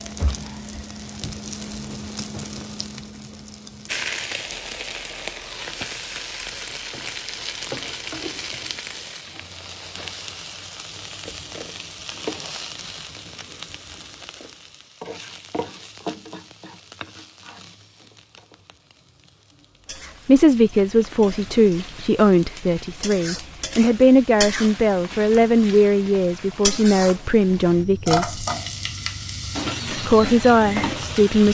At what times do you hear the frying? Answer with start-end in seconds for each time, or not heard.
0.0-31.4.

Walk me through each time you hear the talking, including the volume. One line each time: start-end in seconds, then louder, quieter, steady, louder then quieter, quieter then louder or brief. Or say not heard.
20.2-28.4 steady
29.9-31.4 brief.